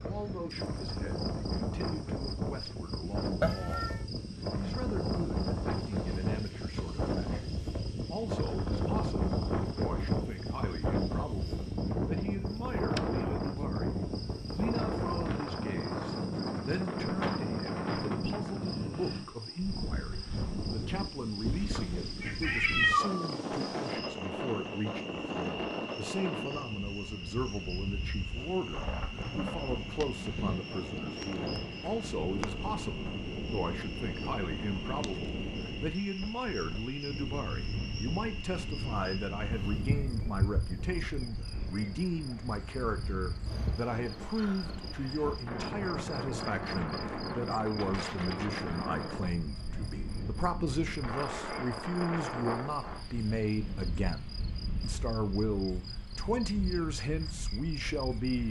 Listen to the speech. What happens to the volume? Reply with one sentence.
The loudness of the speech goes up.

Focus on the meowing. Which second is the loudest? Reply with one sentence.
The loudest moment of the meowing is at 23 seconds.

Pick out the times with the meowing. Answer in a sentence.
You can hear the meowing from 3.4 to 4.0 s, from 21.8 to 23.3 s and from 39.5 to 40.8 s.